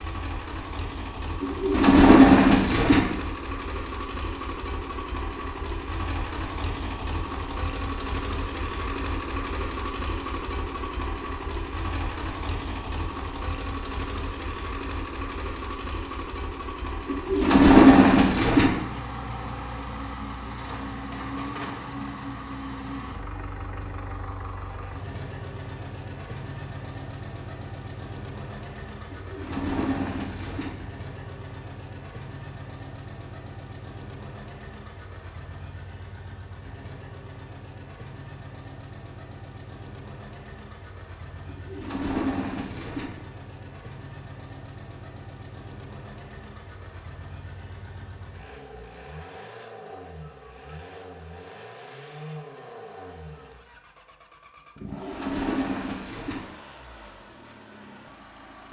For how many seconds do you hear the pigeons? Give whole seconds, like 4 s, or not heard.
8 s.